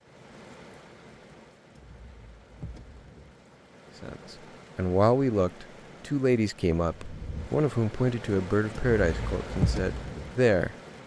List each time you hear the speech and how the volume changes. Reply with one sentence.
You can hear the speech from 4.0 to 10.8 s, getting quieter.